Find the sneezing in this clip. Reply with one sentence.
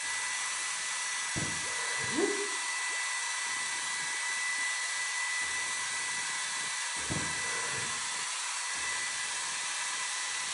The sneezing can be heard from 1.4 to 2.3 s and from 7.1 to 7.9 s.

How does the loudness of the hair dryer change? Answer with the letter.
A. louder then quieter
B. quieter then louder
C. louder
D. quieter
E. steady
E.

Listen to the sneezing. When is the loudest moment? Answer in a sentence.
The loudest moment of the sneezing is at 2 seconds.